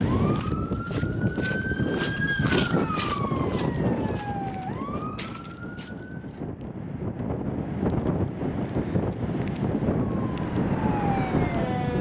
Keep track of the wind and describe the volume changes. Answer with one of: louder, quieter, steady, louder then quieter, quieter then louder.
quieter then louder.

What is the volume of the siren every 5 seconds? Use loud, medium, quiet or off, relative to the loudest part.
loud, medium, loud.